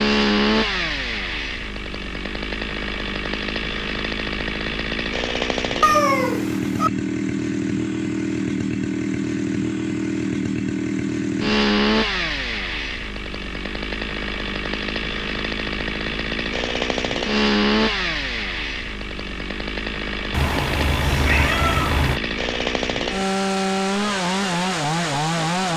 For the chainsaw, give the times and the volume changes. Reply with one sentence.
The chainsaw can be heard from 0.0 to 25.7 s, at a steady volume.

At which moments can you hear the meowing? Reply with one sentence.
You can hear the meowing from 5.8 to 6.9 s and from 20.3 to 22.2 s.